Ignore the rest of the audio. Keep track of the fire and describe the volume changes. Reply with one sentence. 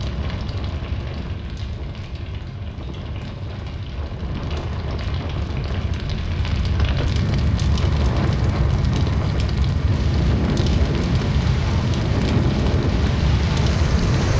The volume of the fire goes up.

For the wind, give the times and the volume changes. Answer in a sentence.
You can hear the wind from 0.0 to 14.3 s, getting louder.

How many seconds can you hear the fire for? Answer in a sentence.
The fire can be heard for 14 seconds in total.